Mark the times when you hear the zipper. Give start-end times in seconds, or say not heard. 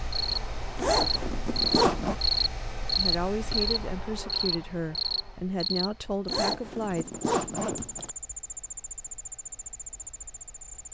0.8-2.1, 6.2-8.1.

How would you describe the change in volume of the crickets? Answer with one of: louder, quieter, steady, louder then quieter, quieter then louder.
quieter.